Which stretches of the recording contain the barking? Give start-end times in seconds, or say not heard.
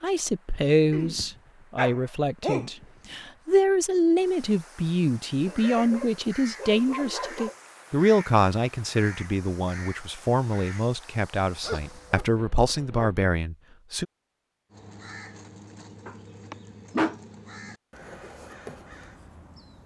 0.9-2.9, 5.5-7.5, 11.6-13.2, 16.1-17.1.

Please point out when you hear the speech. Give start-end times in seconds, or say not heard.
0.0-14.1.